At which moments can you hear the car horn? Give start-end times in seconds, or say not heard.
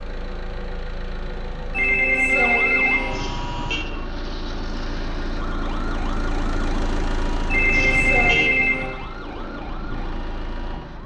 3.1-3.9, 7.7-8.5.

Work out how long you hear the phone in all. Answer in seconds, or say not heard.
3 s.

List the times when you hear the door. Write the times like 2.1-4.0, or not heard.
not heard.